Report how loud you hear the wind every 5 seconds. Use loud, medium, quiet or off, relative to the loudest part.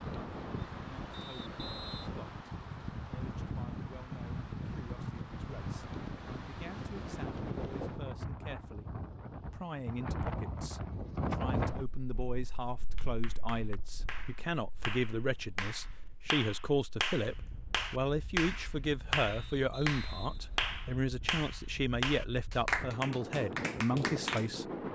loud, loud, loud, quiet, loud.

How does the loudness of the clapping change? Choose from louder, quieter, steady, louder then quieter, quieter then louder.
louder.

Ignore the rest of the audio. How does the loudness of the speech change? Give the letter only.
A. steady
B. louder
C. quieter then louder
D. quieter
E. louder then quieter
B.